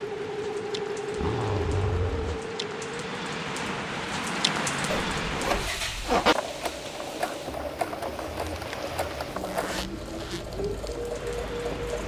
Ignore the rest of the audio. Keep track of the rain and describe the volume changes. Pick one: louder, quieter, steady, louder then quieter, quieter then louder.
louder then quieter.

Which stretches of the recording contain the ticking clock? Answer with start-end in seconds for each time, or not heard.
not heard.